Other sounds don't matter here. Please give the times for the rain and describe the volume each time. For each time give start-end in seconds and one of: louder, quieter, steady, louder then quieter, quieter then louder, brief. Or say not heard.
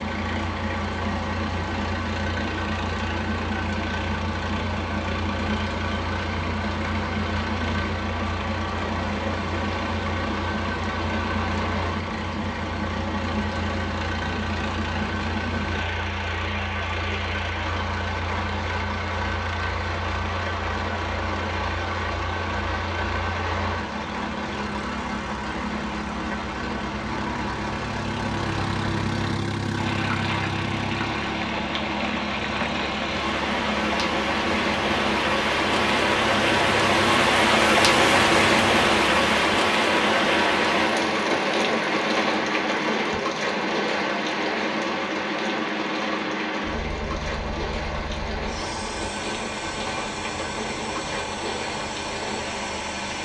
0.0-53.2 louder then quieter.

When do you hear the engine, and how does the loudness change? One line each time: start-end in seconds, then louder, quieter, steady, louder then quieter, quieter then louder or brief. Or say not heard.
0.0-53.2 steady.